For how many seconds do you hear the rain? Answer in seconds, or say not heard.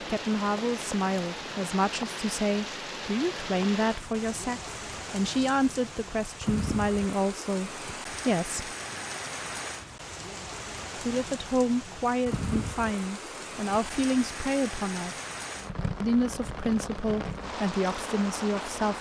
19 s.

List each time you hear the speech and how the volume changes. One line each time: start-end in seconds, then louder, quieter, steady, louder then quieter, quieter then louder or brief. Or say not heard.
0.1-8.7 steady
10.9-15.2 steady
16.0-18.9 brief.